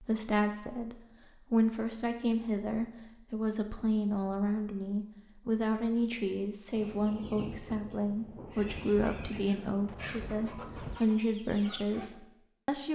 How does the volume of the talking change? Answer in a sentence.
The loudness of the talking stays about the same.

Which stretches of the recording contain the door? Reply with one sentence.
You can't hear the door here.